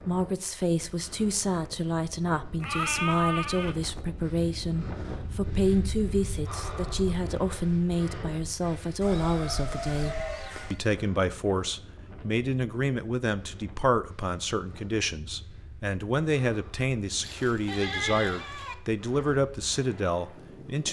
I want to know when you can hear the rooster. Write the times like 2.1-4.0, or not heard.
9.0-10.5.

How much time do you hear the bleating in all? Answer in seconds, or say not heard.
5 s.